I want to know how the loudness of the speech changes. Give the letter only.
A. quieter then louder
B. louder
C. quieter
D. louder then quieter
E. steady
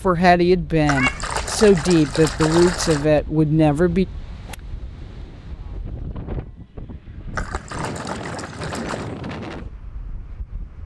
E.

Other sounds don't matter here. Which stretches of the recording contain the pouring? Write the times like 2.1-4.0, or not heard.
0.8-3.0, 7.3-9.1.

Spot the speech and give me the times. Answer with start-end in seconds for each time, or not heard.
0.0-4.0.